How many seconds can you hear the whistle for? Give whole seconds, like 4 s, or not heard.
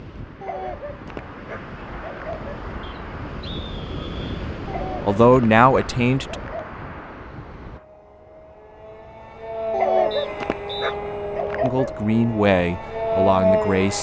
2 s.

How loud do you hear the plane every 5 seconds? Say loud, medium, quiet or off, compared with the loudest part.
quiet, medium, loud.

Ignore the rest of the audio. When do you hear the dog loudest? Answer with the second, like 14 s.
10 s.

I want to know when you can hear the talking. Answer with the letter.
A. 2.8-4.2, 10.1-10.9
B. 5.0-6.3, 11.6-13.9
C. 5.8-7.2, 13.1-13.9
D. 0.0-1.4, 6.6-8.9
B.